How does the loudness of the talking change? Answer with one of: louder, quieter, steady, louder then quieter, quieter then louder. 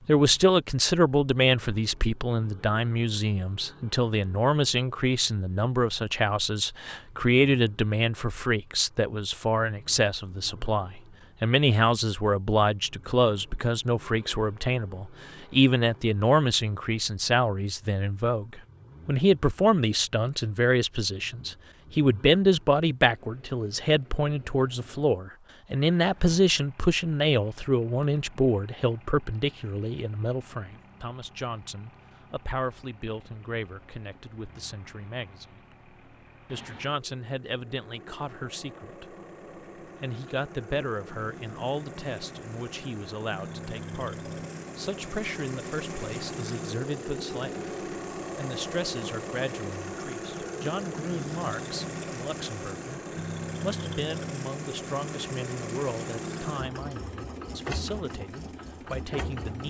quieter.